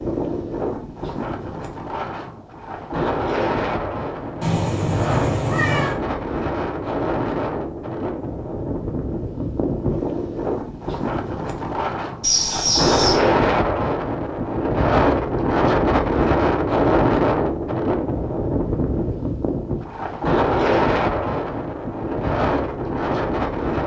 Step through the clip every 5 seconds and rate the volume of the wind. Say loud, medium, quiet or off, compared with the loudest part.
medium, medium, loud, loud, loud.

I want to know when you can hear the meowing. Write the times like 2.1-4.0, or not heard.
4.4-6.0, 12.2-13.2.